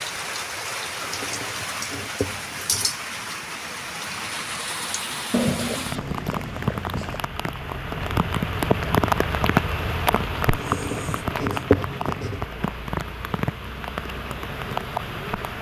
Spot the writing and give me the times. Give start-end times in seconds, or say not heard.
1.0-2.9, 5.3-7.2, 10.5-12.4.